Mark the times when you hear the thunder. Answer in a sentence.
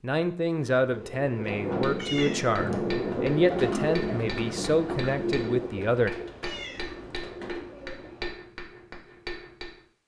You can hear the thunder from 1.4 to 5.7 s.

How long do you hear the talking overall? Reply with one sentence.
You can hear the talking for 6 seconds altogether.